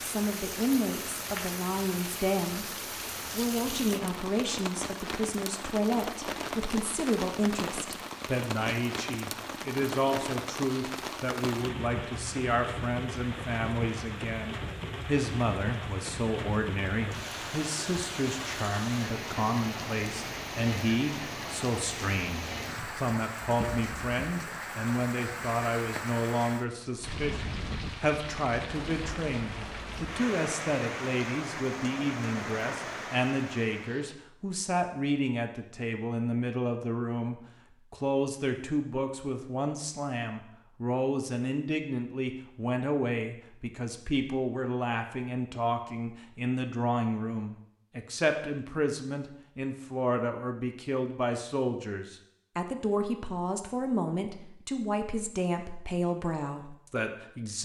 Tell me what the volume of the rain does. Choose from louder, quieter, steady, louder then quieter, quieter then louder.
steady.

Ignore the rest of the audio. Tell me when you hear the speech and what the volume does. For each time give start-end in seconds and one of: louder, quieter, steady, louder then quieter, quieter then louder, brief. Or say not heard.
0.0-2.7 brief
3.3-57.5 steady.